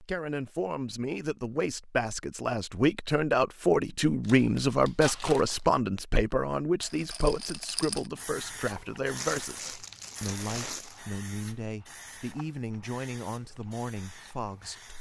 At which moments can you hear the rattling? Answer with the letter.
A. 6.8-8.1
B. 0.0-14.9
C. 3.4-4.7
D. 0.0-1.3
A.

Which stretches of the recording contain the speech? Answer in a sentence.
You can hear the speech from 0.0 to 14.9 s.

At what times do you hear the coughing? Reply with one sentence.
The coughing can't be heard in this clip.